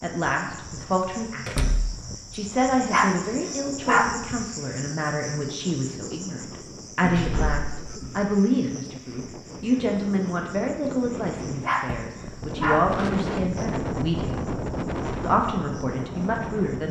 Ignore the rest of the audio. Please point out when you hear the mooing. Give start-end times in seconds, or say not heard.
not heard.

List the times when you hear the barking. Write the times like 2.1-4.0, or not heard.
2.5-4.5, 11.4-13.1.